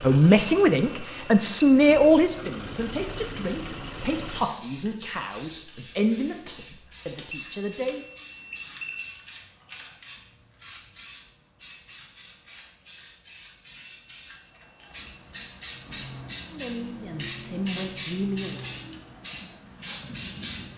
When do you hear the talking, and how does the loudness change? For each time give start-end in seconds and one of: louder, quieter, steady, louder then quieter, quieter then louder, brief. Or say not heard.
0.0-8.1 quieter
16.5-18.6 brief.